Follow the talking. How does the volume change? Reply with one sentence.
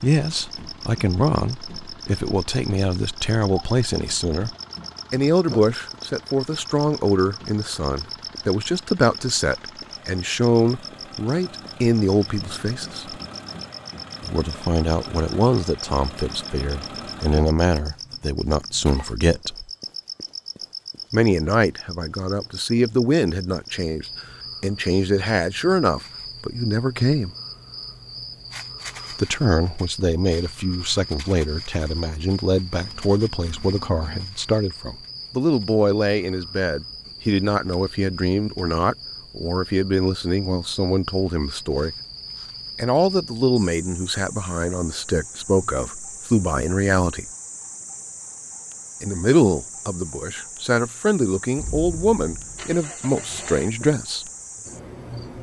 The loudness of the talking stays about the same.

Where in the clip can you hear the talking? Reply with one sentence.
The talking can be heard from 0.0 to 13.2 s, from 14.2 to 19.7 s, from 21.1 to 27.3 s, from 29.1 to 42.0 s, from 42.8 to 47.2 s and from 49.0 to 54.2 s.